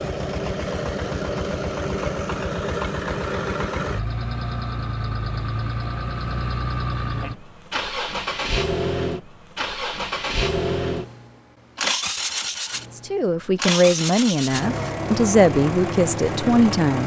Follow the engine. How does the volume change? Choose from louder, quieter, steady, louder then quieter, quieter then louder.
steady.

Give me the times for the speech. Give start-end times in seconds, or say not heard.
12.9-17.0.